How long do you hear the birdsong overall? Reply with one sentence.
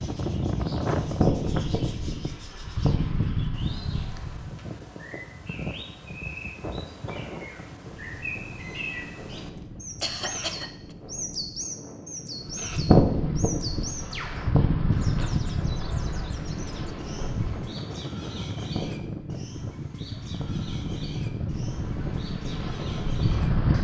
You can hear the birdsong for 24 seconds altogether.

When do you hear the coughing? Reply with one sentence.
The coughing can be heard from 9.6 to 10.9 s.